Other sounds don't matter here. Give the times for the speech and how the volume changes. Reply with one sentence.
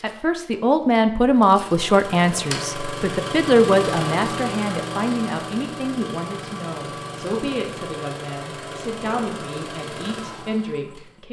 The speech can be heard from 0.0 to 11.2 s, getting quieter.